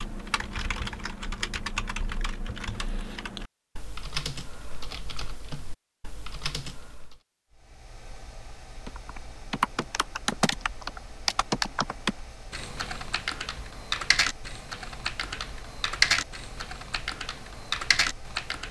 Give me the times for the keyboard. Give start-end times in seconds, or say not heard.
0.0-7.2, 8.8-18.6.